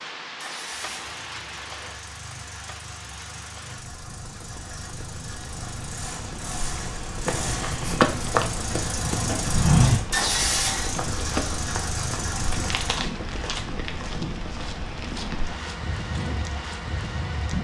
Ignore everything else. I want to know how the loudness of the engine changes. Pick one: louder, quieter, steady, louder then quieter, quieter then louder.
louder.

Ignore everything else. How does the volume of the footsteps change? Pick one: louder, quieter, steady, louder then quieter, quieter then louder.
quieter.